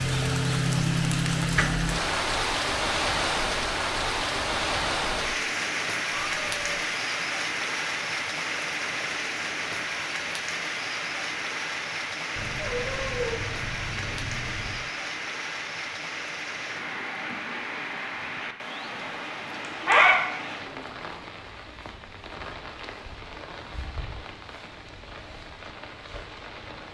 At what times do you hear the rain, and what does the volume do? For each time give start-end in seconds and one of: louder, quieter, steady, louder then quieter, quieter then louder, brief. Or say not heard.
0.0-26.8 quieter.